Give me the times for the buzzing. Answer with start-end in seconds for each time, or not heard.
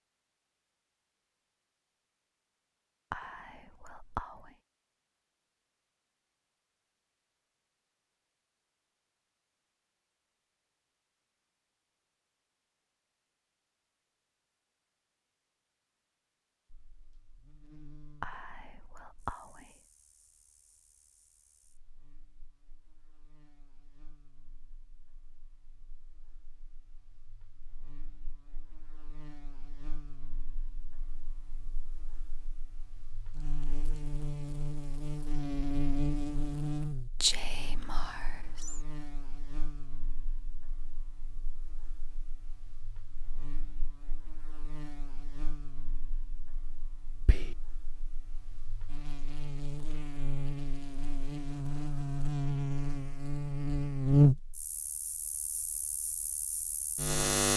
16.7-57.5.